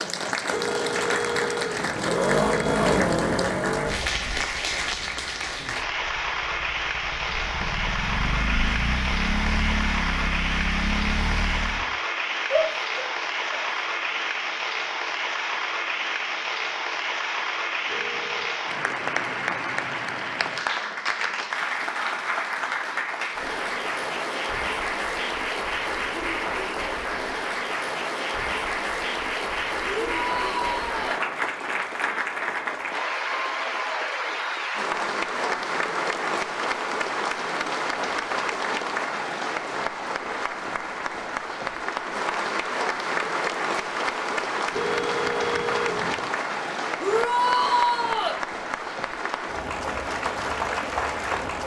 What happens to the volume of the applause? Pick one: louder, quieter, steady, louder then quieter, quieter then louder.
steady.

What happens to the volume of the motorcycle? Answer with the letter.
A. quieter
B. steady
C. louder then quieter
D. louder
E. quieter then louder
E.